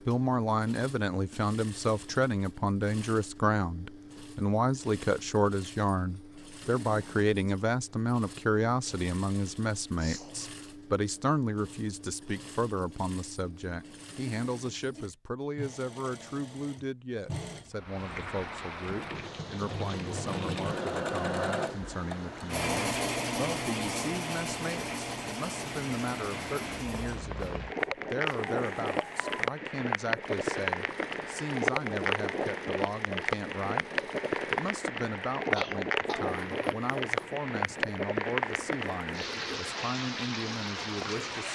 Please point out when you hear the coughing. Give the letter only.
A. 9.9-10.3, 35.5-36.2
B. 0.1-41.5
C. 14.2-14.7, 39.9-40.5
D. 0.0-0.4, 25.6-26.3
A.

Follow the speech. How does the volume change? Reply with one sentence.
The volume of the speech goes down.